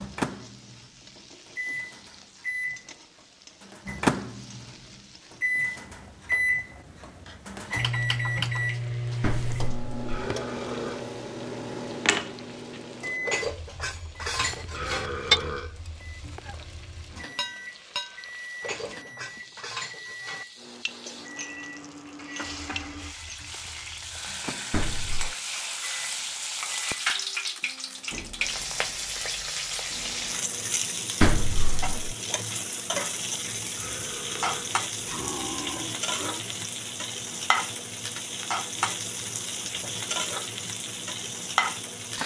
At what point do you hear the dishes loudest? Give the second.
15 s.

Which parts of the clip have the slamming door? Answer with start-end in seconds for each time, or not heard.
9.2-10.3, 24.7-25.4, 31.2-32.1.